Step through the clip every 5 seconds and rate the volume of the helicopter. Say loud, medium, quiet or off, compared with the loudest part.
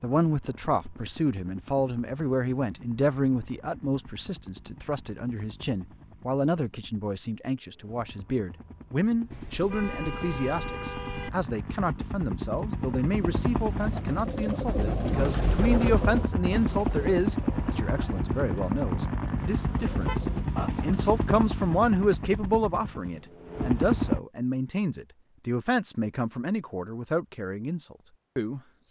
quiet, quiet, medium, loud, loud, off.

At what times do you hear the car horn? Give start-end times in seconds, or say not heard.
9.3-11.3, 19.6-20.6.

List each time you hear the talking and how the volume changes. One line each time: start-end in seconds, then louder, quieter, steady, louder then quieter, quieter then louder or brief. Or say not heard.
0.0-28.8 steady.